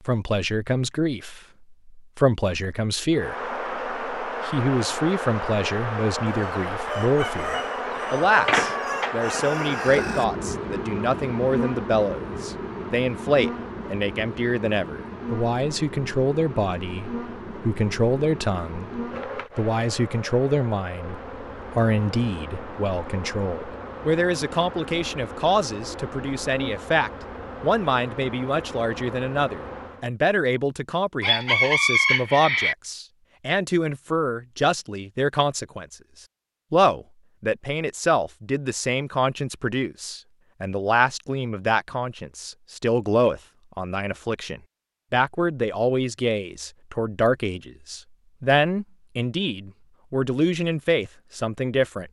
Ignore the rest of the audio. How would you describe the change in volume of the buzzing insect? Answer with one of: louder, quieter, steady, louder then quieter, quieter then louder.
quieter.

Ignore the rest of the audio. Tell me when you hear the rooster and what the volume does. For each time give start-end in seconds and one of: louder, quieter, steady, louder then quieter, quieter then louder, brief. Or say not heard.
6.2-10.2 steady
31.2-32.8 brief.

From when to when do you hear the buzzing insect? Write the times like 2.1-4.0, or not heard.
3.1-30.1.